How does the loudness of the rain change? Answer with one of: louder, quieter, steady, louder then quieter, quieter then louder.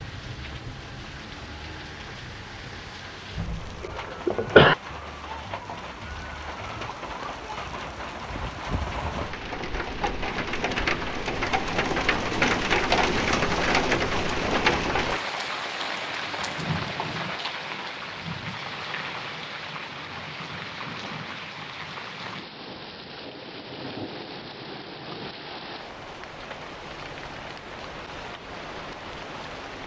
louder then quieter.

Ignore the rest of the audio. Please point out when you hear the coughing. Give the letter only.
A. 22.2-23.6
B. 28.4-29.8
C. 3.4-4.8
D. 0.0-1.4
C.